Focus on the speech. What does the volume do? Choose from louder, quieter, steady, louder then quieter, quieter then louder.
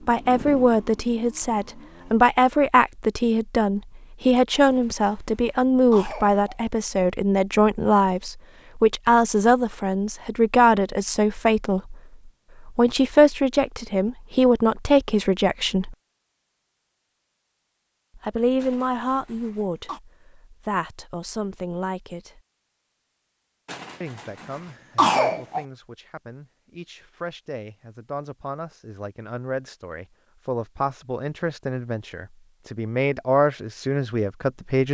quieter then louder.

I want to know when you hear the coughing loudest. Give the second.
25 s.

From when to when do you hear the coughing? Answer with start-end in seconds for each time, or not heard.
4.6-6.5, 18.6-20.0, 23.6-25.6.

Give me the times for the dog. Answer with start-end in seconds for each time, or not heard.
not heard.